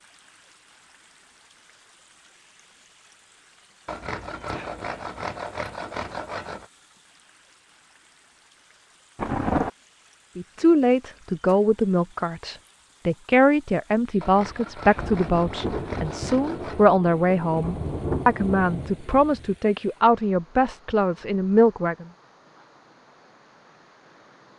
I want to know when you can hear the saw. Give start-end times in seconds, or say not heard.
3.9-6.7, 14.2-16.9.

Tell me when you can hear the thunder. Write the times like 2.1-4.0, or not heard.
9.2-9.7, 14.9-19.6.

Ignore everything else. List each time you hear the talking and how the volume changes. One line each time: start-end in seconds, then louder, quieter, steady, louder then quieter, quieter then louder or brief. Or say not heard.
10.3-22.1 steady.